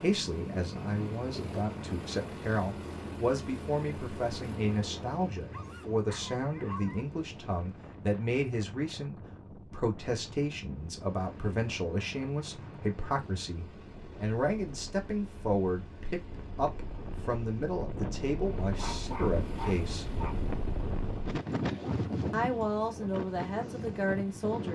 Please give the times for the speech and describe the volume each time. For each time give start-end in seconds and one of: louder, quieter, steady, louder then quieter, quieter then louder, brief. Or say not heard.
0.0-20.1 steady
22.3-24.7 brief.